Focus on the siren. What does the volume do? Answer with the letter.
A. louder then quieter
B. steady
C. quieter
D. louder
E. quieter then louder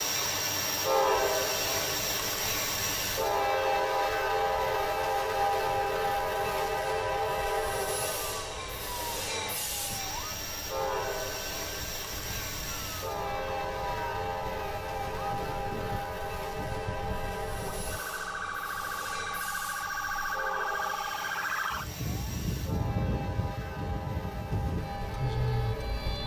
D.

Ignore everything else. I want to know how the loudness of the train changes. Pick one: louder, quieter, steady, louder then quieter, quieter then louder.
quieter.